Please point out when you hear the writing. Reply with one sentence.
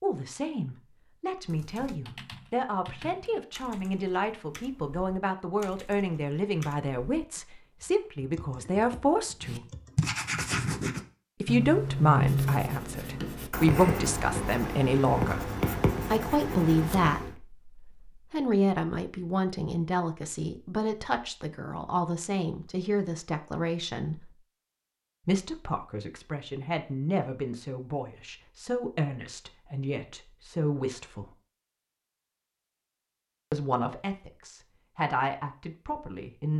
You can hear the writing from 9.4 to 17.4 s.